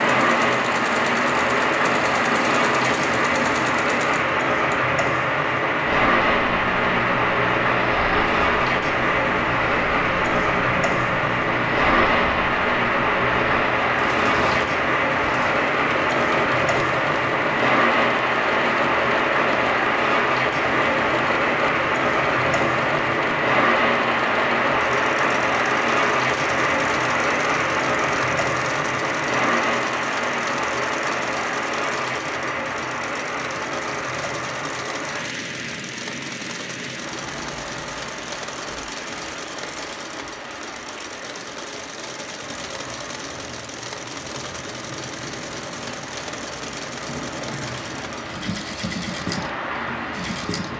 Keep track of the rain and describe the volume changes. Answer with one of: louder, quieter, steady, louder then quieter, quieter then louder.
quieter.